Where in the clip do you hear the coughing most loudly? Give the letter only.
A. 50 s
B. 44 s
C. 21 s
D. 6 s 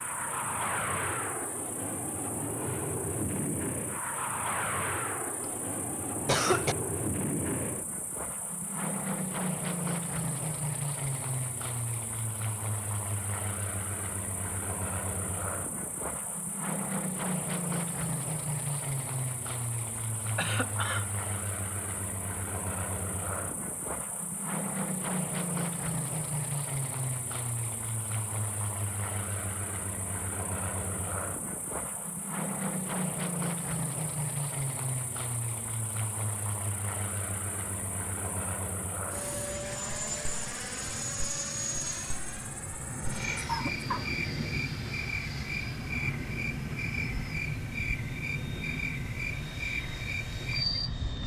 D.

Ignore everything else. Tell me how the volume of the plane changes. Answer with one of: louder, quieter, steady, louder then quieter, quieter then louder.
steady.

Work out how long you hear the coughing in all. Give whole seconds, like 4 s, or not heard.
3 s.